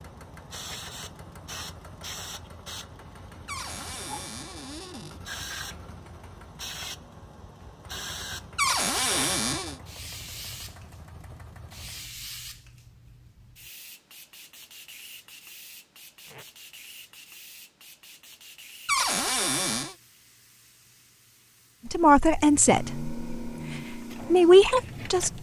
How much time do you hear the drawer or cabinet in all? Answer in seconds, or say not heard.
4 s.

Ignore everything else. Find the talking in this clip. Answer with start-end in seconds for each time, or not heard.
21.9-25.3.